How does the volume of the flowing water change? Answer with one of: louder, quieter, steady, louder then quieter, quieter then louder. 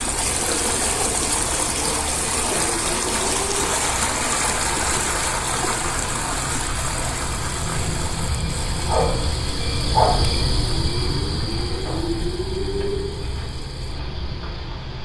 quieter.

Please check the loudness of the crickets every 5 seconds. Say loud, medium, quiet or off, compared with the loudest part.
medium, loud, loud.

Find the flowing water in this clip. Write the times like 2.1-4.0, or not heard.
0.0-14.9.